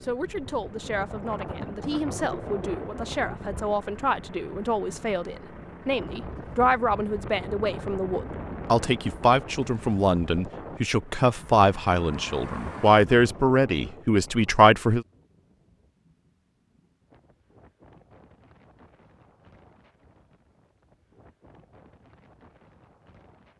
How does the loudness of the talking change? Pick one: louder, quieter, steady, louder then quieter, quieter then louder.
louder.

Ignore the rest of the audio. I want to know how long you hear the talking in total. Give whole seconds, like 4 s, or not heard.
15 s.